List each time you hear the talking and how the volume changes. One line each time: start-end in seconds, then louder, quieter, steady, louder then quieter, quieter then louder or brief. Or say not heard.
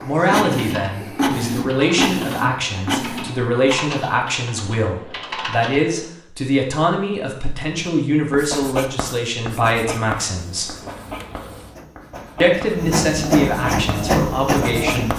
0.0-10.8 steady
12.4-15.1 brief.